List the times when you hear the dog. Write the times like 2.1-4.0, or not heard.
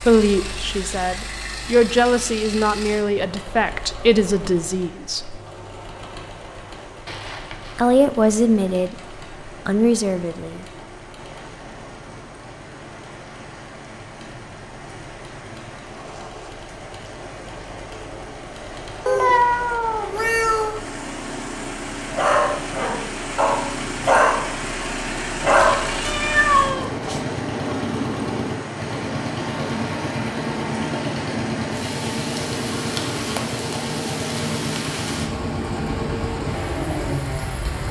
22.1-25.9.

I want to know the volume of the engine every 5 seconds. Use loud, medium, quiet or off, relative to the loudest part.
medium, quiet, quiet, quiet, medium, loud, loud, loud.